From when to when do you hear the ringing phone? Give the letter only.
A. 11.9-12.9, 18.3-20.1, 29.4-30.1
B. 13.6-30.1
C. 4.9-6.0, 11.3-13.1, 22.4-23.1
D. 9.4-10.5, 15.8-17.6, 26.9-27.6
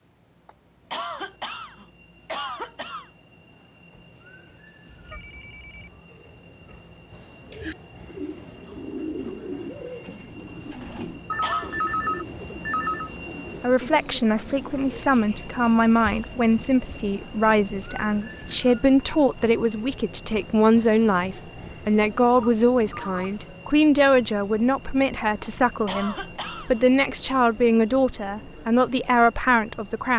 C.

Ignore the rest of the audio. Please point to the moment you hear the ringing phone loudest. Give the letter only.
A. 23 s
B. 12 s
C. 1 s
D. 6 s
B.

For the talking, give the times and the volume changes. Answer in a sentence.
The talking can be heard from 13.6 to 30.1 s, at a steady volume.